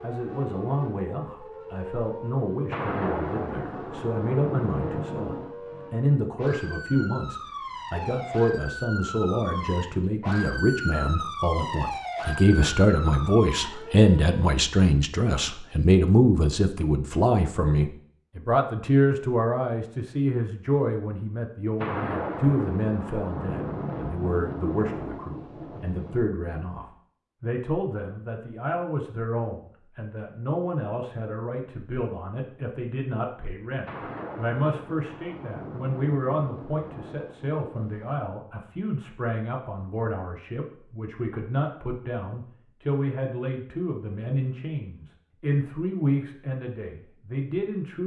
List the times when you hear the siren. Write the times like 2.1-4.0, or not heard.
0.0-14.4.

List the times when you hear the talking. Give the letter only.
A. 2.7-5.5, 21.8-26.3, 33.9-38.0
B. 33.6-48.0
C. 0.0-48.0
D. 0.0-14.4
C.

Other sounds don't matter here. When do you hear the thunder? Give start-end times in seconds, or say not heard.
2.7-5.5, 21.8-26.3, 33.9-38.0.